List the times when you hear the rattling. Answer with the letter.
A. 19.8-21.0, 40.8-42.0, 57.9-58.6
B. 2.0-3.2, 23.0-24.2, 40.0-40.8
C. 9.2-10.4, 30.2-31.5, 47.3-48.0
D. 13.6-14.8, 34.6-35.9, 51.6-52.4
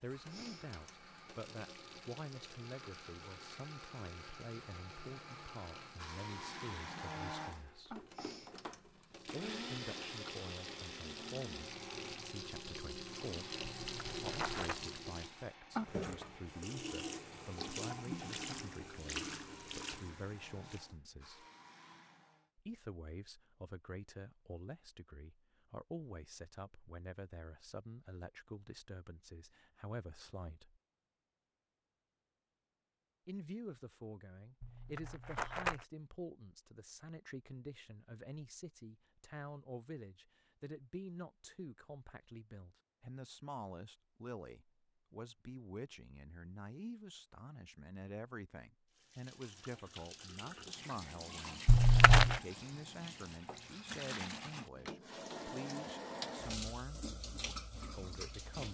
D.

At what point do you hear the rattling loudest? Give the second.
52 s.